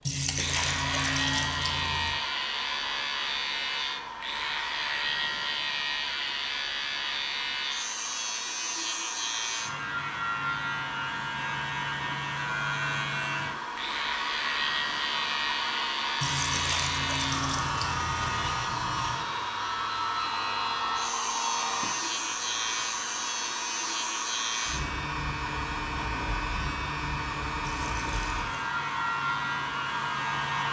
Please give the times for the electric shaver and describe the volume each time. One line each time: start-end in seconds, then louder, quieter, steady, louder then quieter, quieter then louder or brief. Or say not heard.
0.3-30.6 steady.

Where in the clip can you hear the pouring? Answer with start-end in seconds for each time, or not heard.
0.1-2.1, 16.2-18.6, 27.6-28.7.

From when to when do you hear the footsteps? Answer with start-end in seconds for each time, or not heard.
not heard.